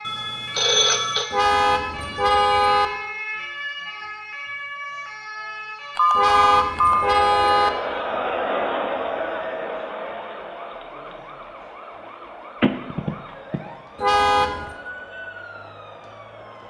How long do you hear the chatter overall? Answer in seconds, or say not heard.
10 s.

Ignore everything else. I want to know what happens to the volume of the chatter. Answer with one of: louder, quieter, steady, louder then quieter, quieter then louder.
quieter.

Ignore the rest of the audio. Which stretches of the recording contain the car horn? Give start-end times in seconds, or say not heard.
1.3-2.9, 6.2-7.7, 13.9-14.7.